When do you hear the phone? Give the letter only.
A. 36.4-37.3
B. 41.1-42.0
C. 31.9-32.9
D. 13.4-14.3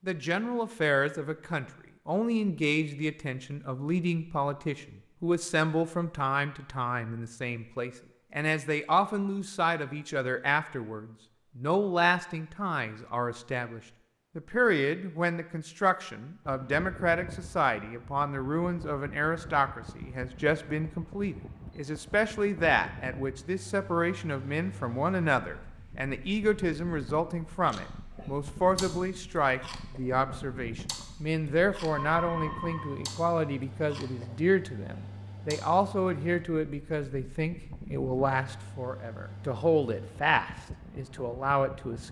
C.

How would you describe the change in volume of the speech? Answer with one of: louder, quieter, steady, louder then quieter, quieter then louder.
steady.